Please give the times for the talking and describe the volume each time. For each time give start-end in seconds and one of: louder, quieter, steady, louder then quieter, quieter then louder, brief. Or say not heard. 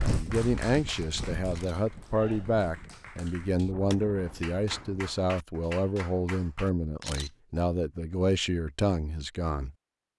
0.0-9.8 steady.